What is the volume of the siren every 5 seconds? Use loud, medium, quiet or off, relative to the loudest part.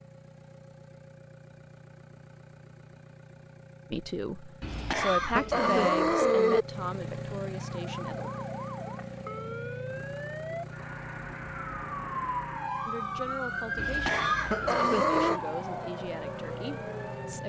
off, medium, loud, loud.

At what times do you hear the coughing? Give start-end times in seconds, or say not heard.
4.6-6.7, 13.8-15.4.